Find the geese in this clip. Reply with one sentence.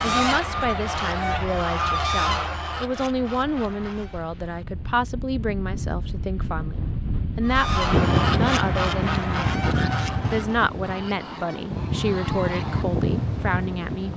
You can hear the geese from 0.0 to 4.2 s and from 7.4 to 12.8 s.